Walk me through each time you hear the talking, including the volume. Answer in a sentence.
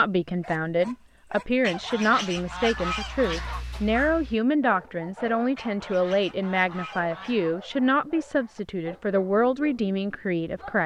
The talking can be heard from 0.0 to 10.8 s, at a steady volume.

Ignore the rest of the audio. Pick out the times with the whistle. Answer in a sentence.
You can't hear the whistle here.